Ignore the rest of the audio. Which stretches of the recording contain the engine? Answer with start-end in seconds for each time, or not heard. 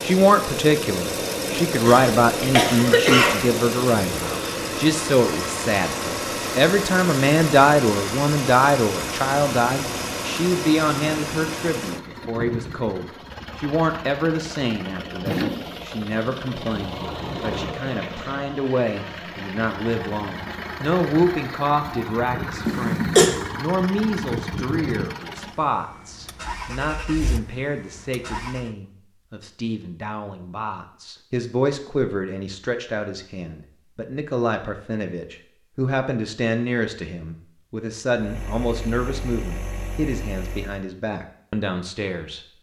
0.0-28.7, 38.1-40.9.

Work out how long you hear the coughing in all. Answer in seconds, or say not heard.
2 s.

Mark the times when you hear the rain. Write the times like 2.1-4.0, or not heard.
not heard.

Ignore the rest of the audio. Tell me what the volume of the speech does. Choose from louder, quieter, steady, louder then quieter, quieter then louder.
quieter.